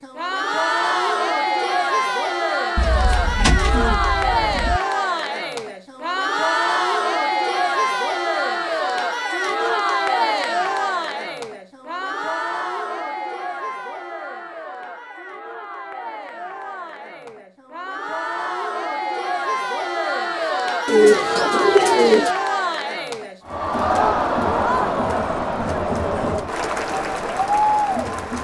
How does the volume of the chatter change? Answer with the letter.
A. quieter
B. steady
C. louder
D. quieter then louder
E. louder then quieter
D.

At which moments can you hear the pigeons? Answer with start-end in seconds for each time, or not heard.
2.8-4.8, 20.9-22.3.